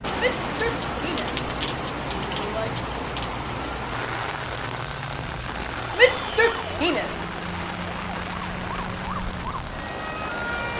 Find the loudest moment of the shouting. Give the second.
6 s.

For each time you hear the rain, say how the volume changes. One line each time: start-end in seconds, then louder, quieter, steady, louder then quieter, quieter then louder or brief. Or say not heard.
0.0-10.7 quieter.